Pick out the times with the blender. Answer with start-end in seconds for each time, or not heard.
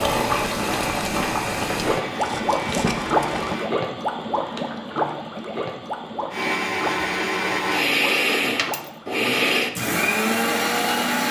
0.2-3.7, 6.3-11.2.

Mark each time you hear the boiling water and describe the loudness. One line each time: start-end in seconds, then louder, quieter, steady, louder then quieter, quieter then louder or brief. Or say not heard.
0.0-9.1 quieter.